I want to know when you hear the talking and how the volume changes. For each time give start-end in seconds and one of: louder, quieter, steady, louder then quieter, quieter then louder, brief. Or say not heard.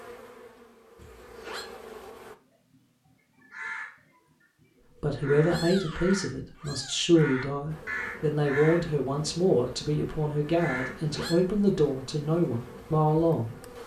5.0-13.6 steady.